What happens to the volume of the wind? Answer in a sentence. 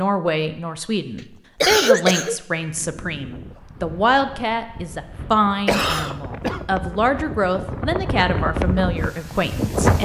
The volume of the wind goes up.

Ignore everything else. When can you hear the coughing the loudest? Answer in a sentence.
The loudest moment of the coughing is at 2 seconds.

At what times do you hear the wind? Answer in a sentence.
The wind can be heard from 2.5 to 10.0 s.